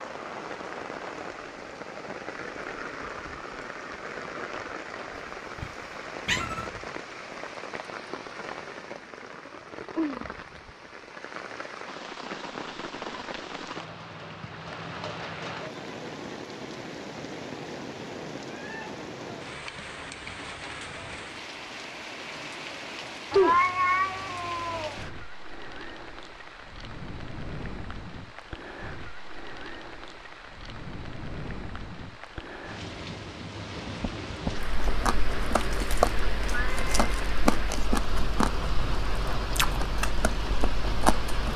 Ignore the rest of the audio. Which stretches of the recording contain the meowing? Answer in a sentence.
You can hear the meowing from 5.6 to 6.7 s, from 23.3 to 24.9 s and from 36.5 to 37.0 s.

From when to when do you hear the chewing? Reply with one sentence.
You can hear the chewing from 34.5 to 41.5 s.